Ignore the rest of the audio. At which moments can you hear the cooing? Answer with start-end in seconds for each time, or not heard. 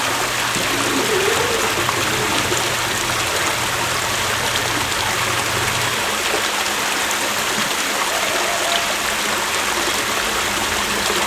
0.6-2.5, 7.2-8.8.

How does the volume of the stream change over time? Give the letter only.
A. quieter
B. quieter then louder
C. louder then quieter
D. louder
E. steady
E.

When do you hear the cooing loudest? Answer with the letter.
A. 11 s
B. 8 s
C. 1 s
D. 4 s
C.